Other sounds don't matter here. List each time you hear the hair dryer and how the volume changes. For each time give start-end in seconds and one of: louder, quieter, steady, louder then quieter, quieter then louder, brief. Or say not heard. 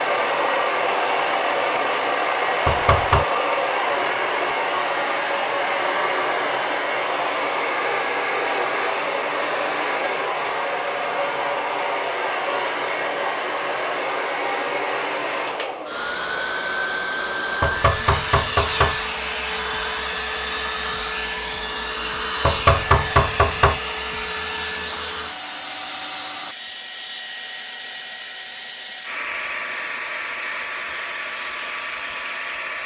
0.0-32.8 quieter.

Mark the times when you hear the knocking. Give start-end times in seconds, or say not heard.
2.6-3.2, 17.6-18.9, 22.4-23.8.